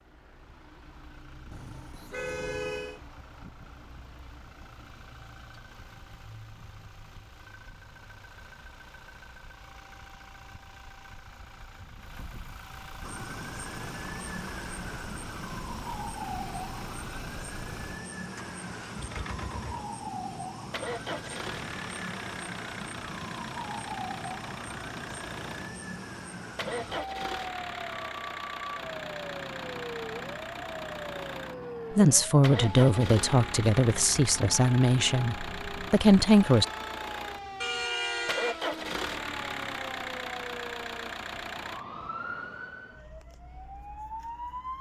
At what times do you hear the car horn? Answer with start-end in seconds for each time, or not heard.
1.5-3.0, 37.6-38.5.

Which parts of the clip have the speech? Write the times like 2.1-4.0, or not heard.
31.9-36.6.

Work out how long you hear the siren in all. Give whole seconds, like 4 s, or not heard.
32 s.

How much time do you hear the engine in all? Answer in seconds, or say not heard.
42 s.